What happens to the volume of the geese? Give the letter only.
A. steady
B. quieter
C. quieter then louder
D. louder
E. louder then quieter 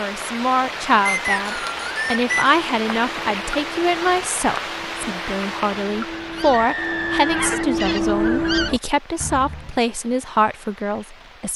D.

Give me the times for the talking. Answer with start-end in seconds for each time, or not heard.
0.0-11.5.